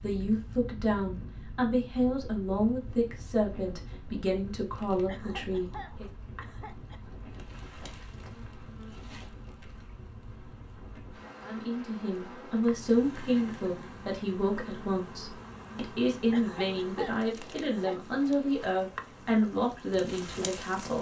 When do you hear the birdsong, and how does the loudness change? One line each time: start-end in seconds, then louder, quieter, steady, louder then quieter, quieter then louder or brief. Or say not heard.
not heard.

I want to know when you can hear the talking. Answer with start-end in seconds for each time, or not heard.
0.0-6.1, 11.4-20.9.